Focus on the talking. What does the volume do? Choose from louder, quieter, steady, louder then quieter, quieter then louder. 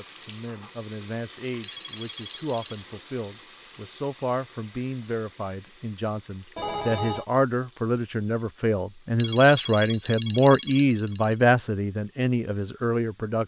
louder.